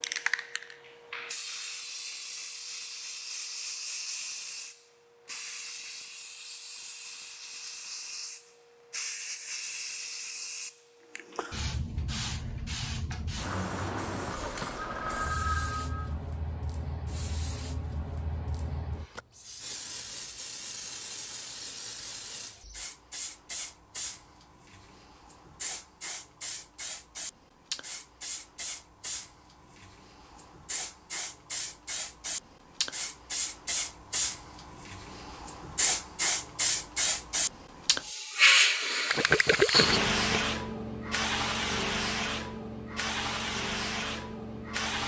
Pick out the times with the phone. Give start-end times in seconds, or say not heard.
14.8-16.1.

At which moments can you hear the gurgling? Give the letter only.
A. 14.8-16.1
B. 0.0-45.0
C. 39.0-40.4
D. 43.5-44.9
C.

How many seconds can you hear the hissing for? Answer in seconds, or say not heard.
45 s.